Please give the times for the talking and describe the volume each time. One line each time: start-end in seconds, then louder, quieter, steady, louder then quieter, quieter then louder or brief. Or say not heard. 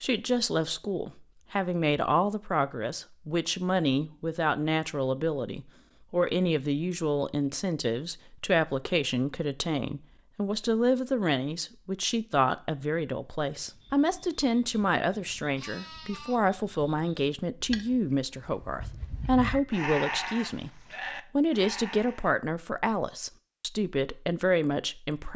0.0-25.3 steady.